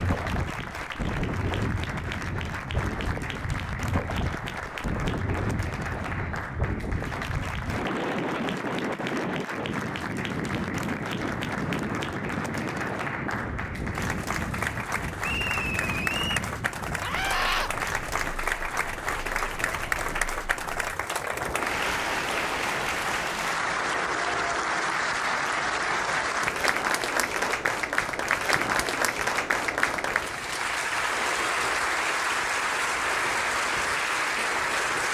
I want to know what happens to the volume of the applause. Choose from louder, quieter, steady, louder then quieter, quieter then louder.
louder.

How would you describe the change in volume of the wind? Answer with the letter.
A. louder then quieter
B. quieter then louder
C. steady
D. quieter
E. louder
D.